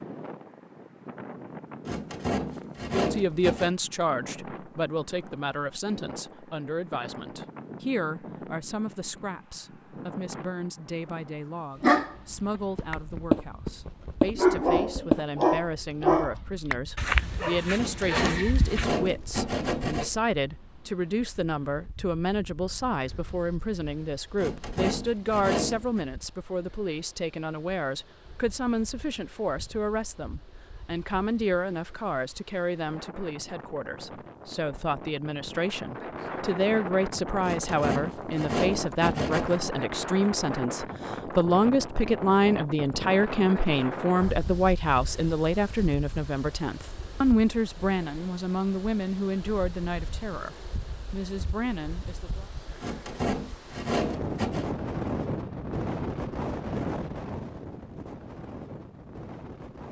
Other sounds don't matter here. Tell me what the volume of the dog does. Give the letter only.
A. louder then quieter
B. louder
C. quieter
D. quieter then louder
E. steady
C.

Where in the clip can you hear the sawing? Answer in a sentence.
The sawing can be heard from 1.9 to 3.8 s, from 17.8 to 20.1 s, from 24.4 to 26.1 s, from 37.4 to 39.6 s and from 52.8 to 54.7 s.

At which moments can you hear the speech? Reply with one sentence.
The speech can be heard from 2.8 to 52.5 s.